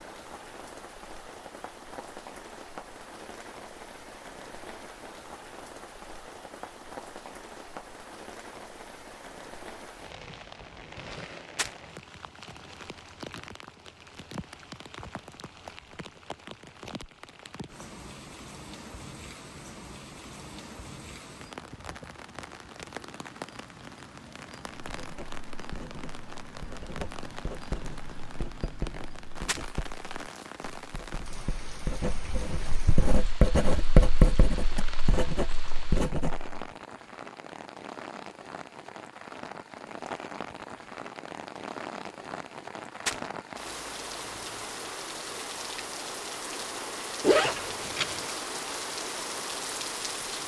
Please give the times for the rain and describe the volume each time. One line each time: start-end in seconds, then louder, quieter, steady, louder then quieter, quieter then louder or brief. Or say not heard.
0.0-50.4 louder.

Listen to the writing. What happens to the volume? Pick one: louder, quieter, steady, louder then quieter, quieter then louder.
louder then quieter.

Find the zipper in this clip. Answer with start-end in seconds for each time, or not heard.
47.2-48.3.